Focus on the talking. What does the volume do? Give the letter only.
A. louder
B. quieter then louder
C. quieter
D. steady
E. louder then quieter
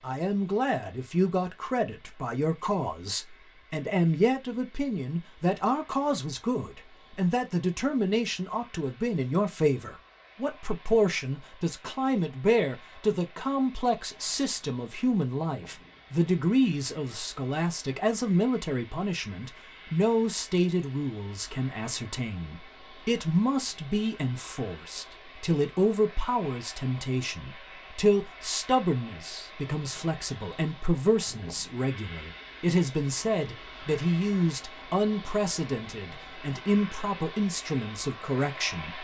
D.